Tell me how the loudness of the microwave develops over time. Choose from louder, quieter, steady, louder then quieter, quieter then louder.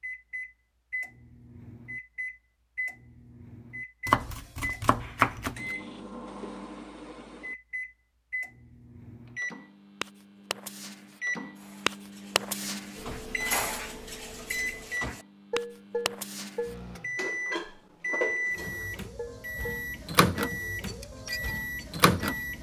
louder.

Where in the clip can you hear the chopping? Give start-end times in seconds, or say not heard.
4.0-5.8.